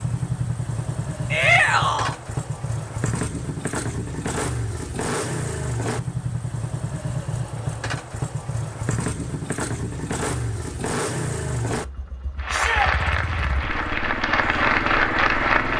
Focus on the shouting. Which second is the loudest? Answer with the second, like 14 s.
2 s.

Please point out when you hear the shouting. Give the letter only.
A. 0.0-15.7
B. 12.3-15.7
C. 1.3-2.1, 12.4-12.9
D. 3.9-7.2
C.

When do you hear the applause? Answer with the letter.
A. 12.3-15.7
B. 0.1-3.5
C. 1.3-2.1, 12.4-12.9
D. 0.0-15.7
A.